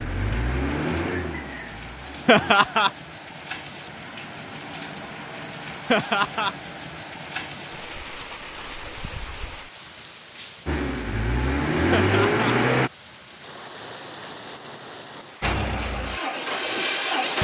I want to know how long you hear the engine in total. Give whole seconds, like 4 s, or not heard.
7 s.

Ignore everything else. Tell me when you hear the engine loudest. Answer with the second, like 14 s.
12 s.